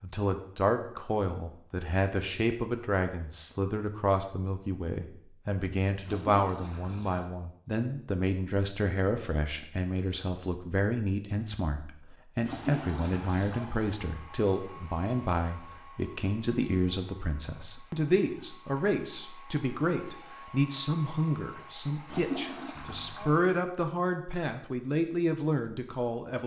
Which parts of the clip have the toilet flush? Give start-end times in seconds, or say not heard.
6.0-7.3, 12.4-13.7, 22.1-23.3.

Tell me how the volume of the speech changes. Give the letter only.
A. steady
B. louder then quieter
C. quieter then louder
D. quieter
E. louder
A.